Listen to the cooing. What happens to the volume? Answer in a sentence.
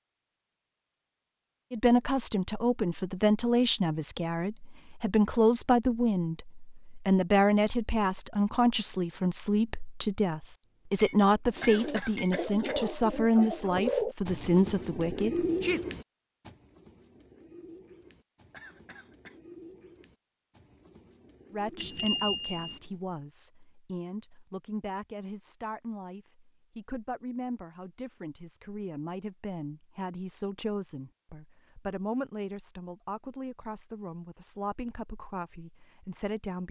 The loudness of the cooing goes down.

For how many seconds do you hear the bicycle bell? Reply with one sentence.
The bicycle bell can be heard for 3 seconds in total.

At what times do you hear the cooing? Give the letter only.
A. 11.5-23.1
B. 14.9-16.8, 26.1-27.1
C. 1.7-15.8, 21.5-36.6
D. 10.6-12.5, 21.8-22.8
A.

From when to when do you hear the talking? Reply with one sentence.
You can hear the talking from 1.7 to 15.8 s and from 21.5 to 36.6 s.